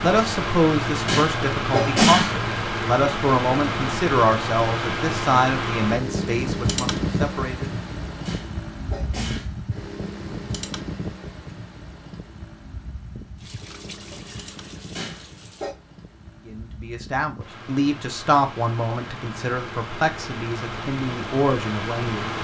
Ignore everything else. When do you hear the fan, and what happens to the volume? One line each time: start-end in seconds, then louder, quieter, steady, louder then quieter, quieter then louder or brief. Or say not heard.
0.0-22.3 quieter then louder.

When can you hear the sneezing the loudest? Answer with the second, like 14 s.
2 s.